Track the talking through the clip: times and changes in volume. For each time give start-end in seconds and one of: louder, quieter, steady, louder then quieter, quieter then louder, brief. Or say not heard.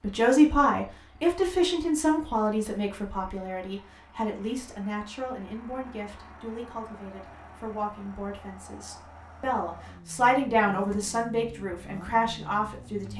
0.0-13.1 quieter then louder.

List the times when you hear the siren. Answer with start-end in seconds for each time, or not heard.
not heard.